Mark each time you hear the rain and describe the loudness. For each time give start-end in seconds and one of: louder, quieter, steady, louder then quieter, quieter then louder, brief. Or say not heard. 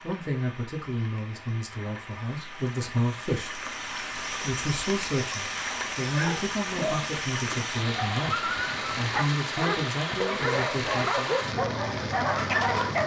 0.0-13.0 louder.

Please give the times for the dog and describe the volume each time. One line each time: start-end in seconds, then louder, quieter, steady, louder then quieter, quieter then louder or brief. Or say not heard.
6.0-13.0 louder.